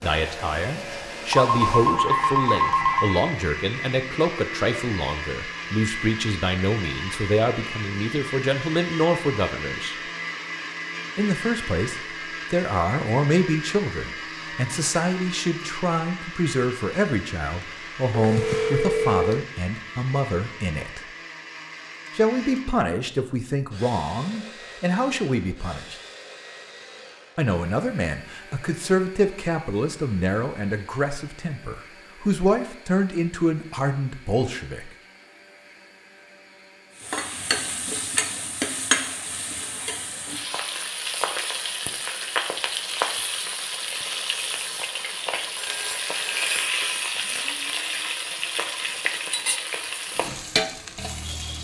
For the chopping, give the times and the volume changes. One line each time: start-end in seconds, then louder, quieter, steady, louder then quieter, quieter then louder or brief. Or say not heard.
not heard.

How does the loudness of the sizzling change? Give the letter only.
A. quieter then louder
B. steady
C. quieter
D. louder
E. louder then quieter
B.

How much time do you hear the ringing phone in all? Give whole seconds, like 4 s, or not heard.
5 s.